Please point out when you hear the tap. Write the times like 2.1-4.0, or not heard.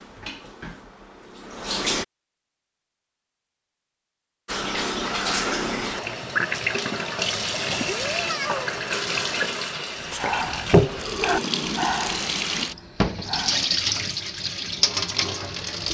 0.0-2.0, 4.5-15.8.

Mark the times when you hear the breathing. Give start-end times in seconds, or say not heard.
9.9-13.7.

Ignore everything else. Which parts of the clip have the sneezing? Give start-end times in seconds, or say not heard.
7.5-8.7.